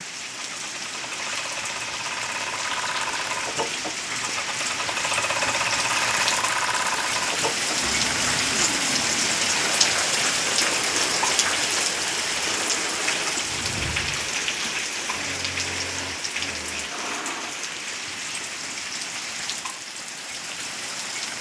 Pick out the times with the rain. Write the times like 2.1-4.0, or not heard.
0.0-21.3.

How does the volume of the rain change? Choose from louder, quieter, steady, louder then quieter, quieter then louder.
louder then quieter.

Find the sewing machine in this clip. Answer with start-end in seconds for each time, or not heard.
0.2-17.6.